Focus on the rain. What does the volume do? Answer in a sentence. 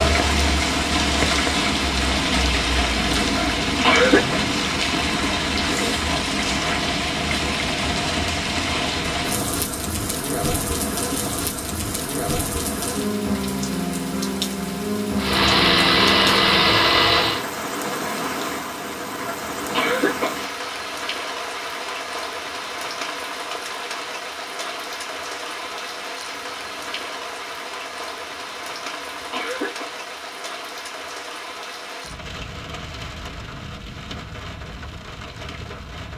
The volume of the rain goes down.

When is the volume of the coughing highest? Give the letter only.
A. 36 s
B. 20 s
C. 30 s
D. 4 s
D.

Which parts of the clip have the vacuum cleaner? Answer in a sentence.
You can hear the vacuum cleaner from 15.2 to 17.4 s.